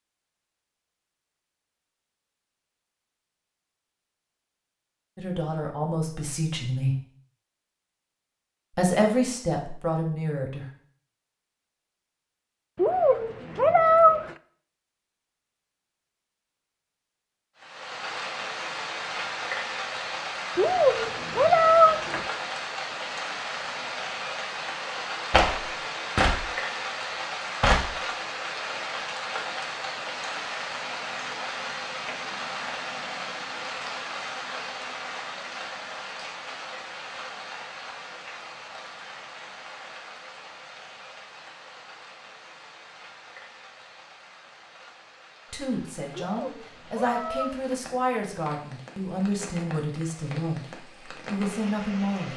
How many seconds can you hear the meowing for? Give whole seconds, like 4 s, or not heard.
5 s.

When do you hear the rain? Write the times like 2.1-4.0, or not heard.
17.6-52.3.